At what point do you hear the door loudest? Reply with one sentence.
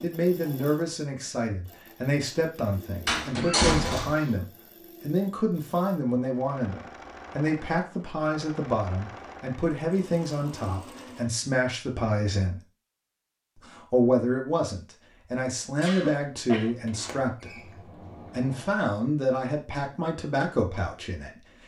The loudest moment of the door is at 4 seconds.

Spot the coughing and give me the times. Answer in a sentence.
The coughing can be heard from 3.4 to 4.3 s and from 15.8 to 16.8 s.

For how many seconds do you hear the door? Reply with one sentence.
You can hear the door for 3 seconds altogether.